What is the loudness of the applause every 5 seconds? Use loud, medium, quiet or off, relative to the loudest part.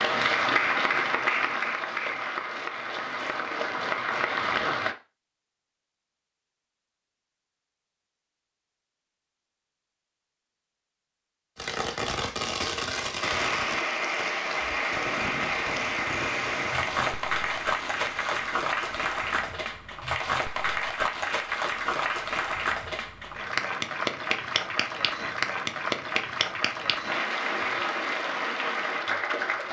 loud, off, loud, loud, loud, loud.